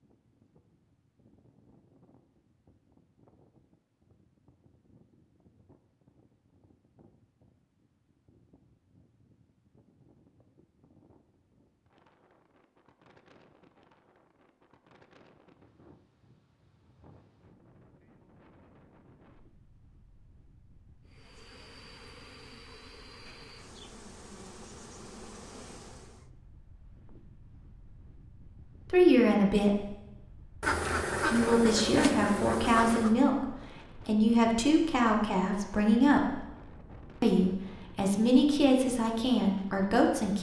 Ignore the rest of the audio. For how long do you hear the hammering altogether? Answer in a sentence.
You can't hear the hammering here.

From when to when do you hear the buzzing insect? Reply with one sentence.
You can hear the buzzing insect from 21.1 to 26.3 s.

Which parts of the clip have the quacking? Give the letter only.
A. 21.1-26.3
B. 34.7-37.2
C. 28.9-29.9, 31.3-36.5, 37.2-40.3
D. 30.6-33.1
D.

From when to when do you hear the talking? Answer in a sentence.
The talking can be heard from 28.9 to 29.9 s, from 31.3 to 36.5 s and from 37.2 to 40.3 s.